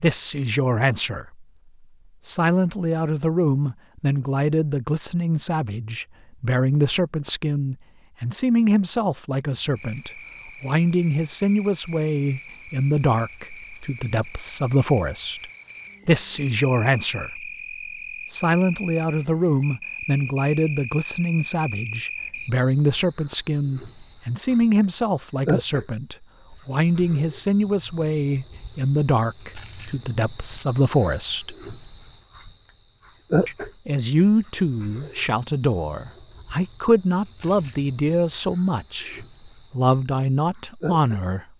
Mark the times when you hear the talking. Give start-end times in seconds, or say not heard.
0.0-1.4, 2.2-15.4, 16.1-17.5, 18.3-31.6, 33.5-41.5.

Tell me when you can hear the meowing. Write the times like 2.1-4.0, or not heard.
not heard.